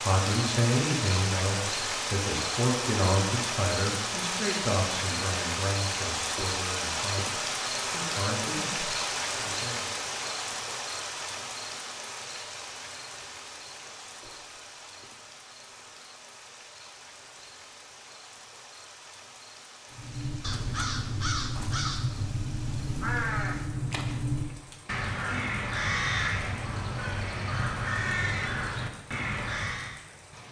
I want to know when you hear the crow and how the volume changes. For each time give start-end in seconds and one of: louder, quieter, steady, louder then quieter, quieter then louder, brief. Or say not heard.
19.9-30.0 steady.